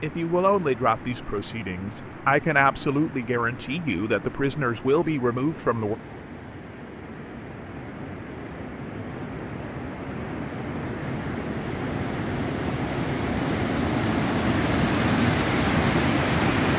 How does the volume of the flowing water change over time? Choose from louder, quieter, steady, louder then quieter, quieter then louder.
louder.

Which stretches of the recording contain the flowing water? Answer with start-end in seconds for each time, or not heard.
0.0-16.7.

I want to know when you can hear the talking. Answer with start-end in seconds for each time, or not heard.
0.0-6.0.